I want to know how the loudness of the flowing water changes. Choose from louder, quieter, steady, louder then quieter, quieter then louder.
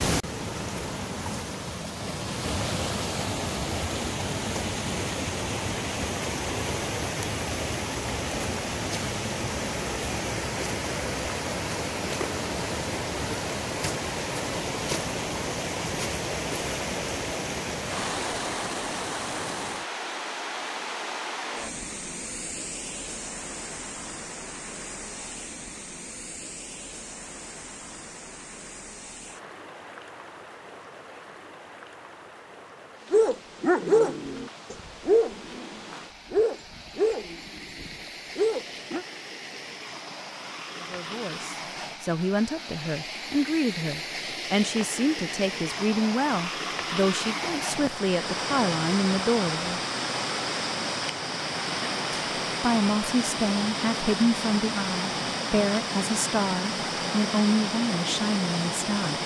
quieter then louder.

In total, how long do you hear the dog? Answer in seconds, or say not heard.
6 s.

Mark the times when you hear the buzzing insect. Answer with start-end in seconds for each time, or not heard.
not heard.